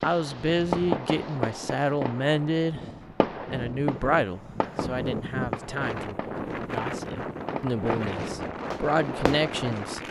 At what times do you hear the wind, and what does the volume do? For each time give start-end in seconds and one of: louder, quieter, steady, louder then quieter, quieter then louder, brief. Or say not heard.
0.0-10.0 louder.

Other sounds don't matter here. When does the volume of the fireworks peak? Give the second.
1 s.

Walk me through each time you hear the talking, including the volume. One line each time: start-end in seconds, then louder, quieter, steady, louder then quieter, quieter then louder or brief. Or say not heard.
0.0-2.9 brief
3.5-10.0 quieter then louder.